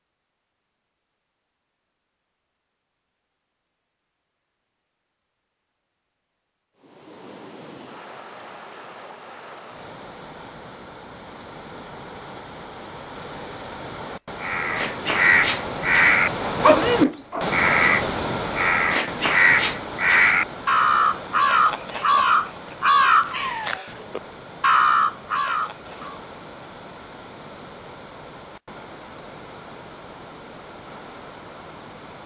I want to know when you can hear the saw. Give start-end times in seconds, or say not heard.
not heard.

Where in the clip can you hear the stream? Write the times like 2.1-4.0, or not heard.
6.8-32.2.